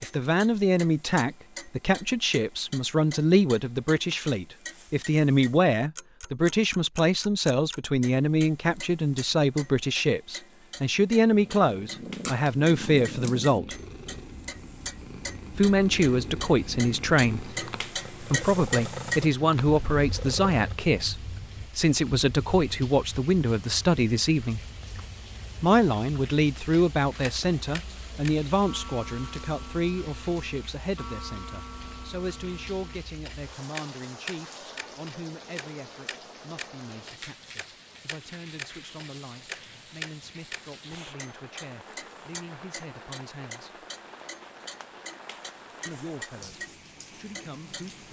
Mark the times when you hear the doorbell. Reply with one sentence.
The doorbell can't be heard in this clip.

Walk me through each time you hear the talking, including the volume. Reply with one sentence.
The talking can be heard from 0.0 to 13.8 s, at a steady volume; from 15.5 to 24.6 s, at a steady volume; from 25.6 to 43.9 s, getting quieter; and briefly from 45.9 to 48.0 s.